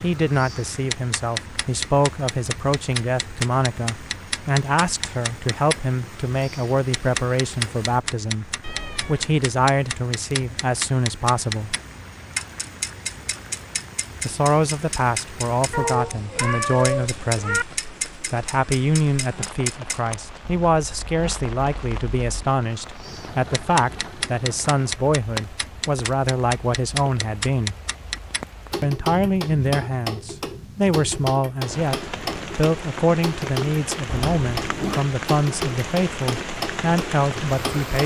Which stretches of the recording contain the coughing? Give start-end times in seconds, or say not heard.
not heard.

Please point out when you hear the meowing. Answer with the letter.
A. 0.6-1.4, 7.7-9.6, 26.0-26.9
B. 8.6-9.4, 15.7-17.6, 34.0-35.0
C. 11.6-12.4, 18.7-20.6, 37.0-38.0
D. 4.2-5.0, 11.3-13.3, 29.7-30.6
B.